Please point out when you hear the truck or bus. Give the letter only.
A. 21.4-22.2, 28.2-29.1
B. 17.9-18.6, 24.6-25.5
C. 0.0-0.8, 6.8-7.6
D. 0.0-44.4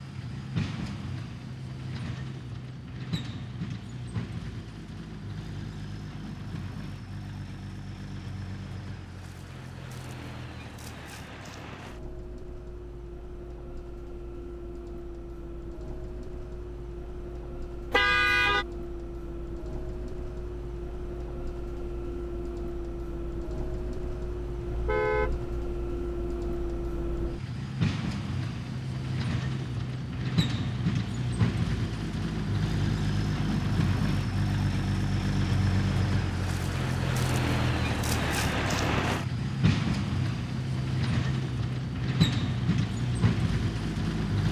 D.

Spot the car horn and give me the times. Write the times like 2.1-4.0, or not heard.
17.9-18.6, 24.6-25.5.